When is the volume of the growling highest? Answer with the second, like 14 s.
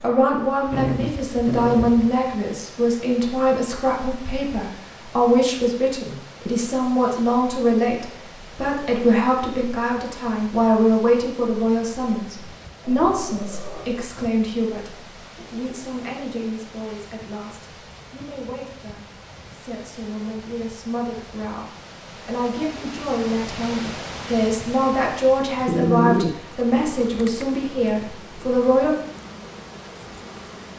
26 s.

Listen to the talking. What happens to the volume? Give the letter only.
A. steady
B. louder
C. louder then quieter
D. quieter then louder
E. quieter
D.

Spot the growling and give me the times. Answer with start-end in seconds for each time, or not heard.
0.7-2.3, 13.1-13.9, 25.6-26.4.